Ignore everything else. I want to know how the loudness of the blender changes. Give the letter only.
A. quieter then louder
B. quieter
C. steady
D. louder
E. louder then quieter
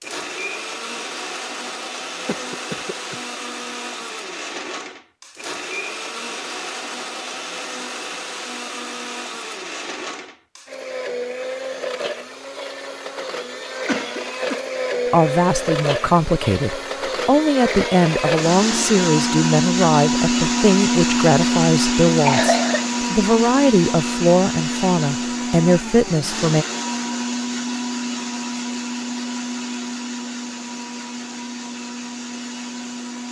E.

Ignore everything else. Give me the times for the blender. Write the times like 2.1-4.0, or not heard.
0.0-33.2.